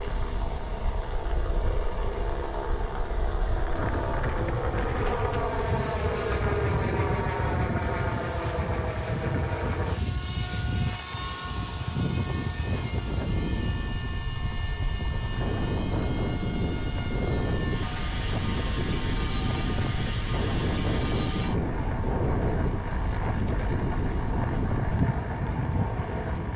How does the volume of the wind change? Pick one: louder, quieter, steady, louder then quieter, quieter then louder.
louder.